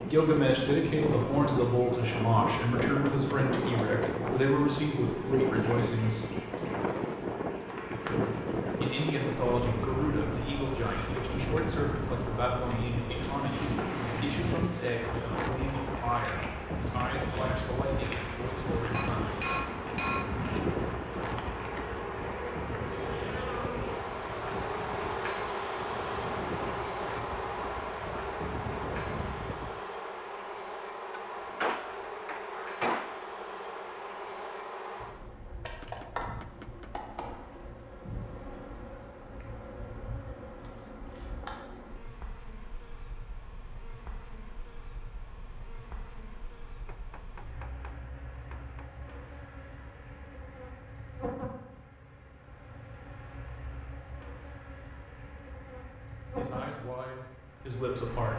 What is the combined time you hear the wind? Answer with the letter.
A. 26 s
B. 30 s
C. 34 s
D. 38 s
B.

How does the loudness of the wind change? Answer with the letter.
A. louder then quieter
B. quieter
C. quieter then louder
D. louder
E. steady
B.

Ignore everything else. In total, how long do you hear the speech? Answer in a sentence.
The speech can be heard for 19 seconds in total.